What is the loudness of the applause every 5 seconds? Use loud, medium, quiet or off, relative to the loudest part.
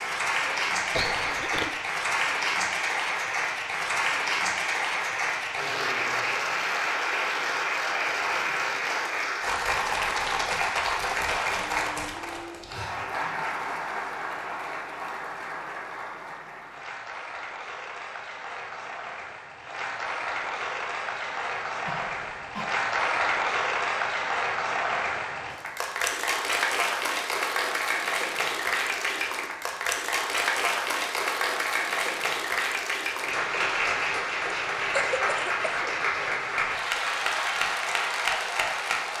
loud, loud, loud, medium, loud, loud, loud, loud.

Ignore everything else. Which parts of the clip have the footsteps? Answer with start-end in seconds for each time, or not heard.
not heard.